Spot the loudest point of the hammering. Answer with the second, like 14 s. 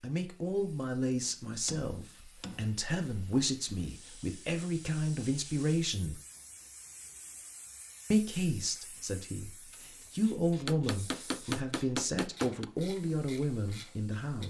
11 s.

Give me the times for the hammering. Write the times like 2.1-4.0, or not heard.
1.2-2.8, 10.7-12.7.